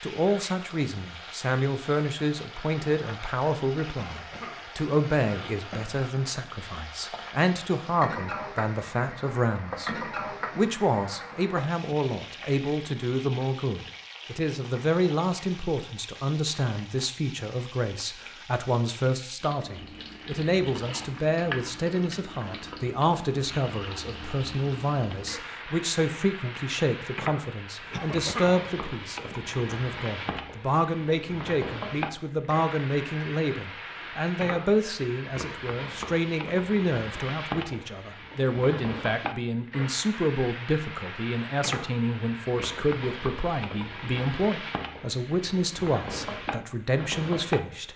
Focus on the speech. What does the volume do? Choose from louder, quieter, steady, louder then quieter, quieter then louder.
steady.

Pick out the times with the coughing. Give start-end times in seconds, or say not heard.
4.0-4.7, 27.9-28.6.